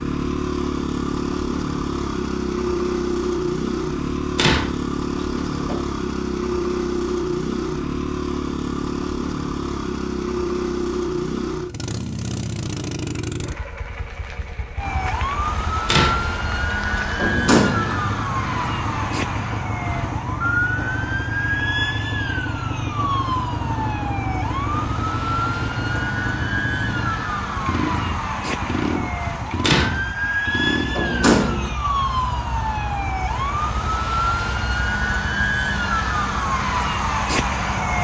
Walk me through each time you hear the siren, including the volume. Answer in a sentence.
You can hear the siren from 14.8 to 37.9 s, at a steady volume.